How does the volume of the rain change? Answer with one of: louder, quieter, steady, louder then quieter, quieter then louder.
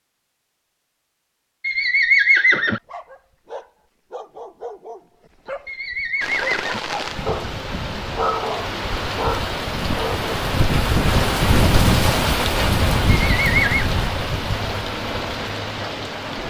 louder then quieter.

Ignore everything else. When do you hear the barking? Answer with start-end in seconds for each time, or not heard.
2.7-10.3.